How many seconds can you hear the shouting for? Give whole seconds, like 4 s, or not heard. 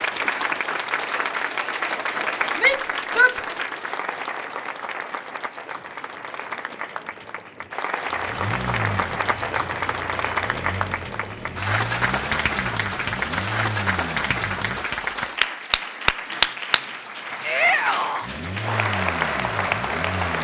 2 s.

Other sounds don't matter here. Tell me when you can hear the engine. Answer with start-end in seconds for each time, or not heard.
8.1-14.9, 18.2-20.3.